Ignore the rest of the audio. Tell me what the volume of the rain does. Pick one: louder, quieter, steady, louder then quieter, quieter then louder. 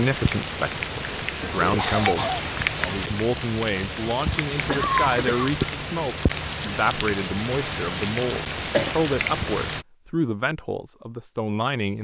steady.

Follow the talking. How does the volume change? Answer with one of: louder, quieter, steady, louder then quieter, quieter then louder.
steady.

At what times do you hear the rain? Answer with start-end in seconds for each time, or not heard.
0.0-9.8.